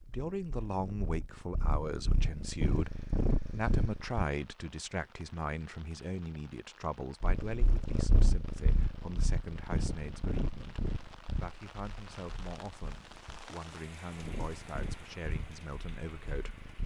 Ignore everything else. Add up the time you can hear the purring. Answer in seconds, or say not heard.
14 s.